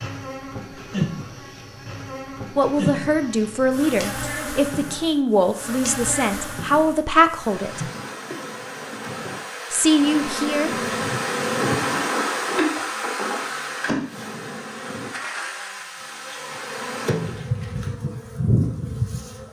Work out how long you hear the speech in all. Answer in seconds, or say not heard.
6 s.